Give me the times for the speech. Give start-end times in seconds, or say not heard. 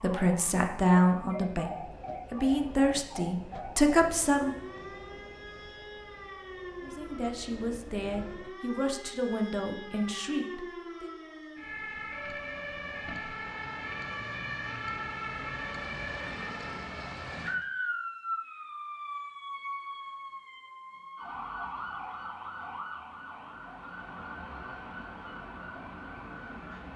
0.0-4.5, 6.8-11.1.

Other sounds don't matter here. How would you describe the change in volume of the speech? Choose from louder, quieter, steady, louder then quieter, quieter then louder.
quieter.